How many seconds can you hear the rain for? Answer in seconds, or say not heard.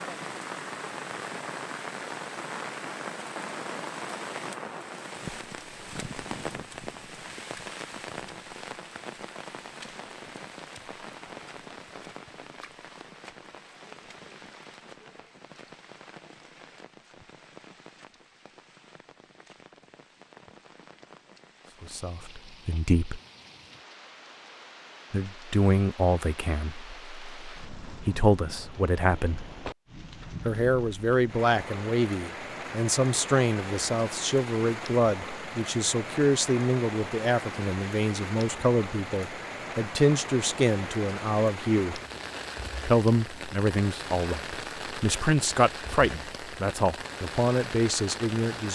49 s.